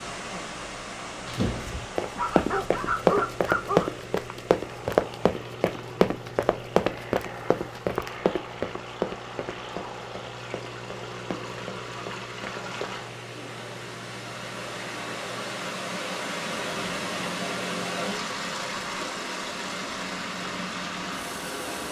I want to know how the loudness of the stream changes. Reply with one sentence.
The volume of the stream goes down, then up.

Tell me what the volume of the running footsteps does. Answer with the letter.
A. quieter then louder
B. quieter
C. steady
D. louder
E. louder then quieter
B.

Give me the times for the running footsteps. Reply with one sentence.
You can hear the running footsteps from 1.2 to 12.9 s.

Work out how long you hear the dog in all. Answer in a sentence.
You can hear the dog for 2 seconds altogether.